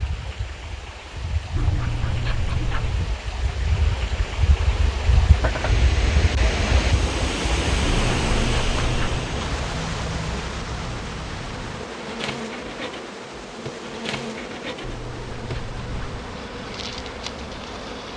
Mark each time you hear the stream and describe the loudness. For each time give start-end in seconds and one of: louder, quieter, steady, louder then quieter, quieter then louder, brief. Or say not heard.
0.0-18.1 louder then quieter.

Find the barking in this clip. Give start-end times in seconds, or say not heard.
1.6-3.0, 7.8-9.2, 14.8-16.2.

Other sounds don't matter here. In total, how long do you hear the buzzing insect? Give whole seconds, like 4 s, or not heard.
18 s.